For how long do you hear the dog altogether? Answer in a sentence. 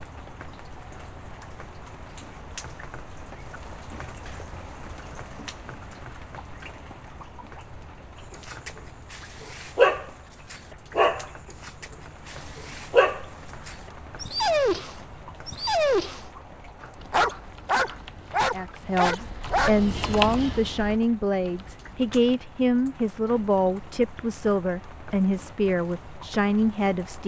The dog can be heard for 11 seconds in total.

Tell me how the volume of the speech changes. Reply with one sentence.
The loudness of the speech stays about the same.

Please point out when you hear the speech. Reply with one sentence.
The speech can be heard from 18.4 to 27.2 s.